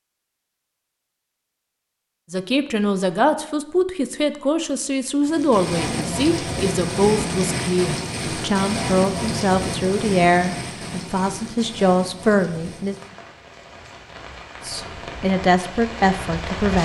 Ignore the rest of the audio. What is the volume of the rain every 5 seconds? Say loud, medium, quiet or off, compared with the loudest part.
off, loud, medium, medium.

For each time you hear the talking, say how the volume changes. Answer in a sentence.
The talking can be heard from 2.3 to 12.9 s, at a steady volume; and briefly from 14.7 to 16.8 s.